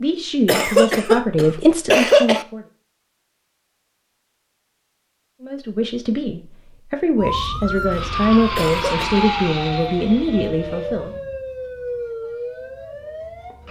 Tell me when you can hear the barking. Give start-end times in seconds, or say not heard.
not heard.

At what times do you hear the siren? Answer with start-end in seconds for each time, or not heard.
7.2-13.6.